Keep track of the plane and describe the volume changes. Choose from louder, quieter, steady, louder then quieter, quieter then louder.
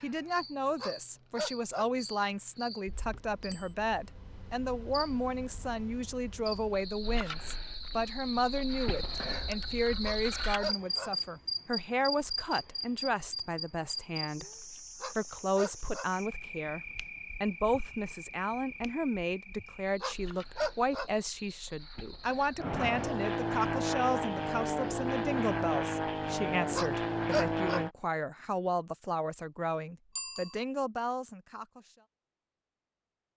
steady.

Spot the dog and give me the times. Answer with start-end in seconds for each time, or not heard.
0.8-1.9, 10.0-11.1, 15.0-16.1, 20.0-21.1, 26.7-27.8.